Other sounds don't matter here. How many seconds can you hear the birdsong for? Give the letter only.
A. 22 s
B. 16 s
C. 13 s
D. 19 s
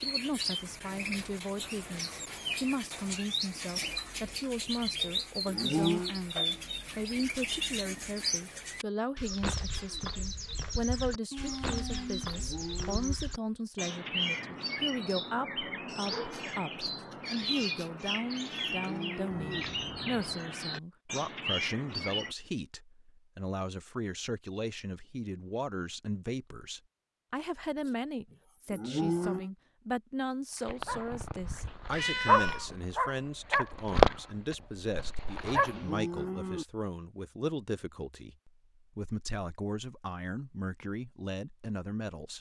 A.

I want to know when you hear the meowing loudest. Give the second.
32 s.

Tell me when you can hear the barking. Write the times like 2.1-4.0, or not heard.
30.6-36.0.